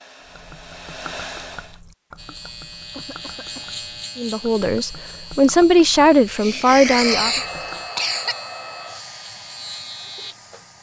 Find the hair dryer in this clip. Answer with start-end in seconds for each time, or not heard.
0.0-1.8, 6.9-10.7.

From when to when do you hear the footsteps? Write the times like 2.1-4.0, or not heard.
not heard.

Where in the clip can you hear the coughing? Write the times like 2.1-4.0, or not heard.
2.9-3.7, 6.3-8.3.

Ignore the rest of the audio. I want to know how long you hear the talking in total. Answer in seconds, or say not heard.
3 s.